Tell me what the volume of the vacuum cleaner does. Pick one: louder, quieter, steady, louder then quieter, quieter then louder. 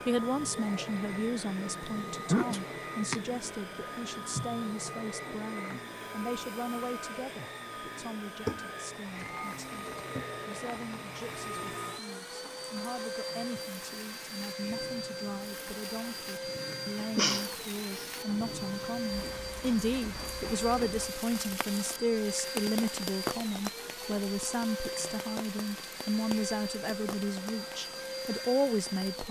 steady.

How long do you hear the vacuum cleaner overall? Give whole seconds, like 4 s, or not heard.
29 s.